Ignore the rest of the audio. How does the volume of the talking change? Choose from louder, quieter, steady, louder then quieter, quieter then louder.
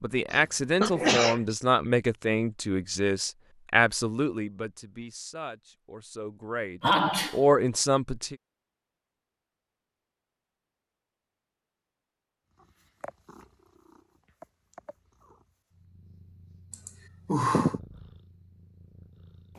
quieter then louder.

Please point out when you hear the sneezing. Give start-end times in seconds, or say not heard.
0.3-1.6, 6.8-7.4, 16.7-17.8.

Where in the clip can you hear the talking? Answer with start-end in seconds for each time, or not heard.
0.0-8.3.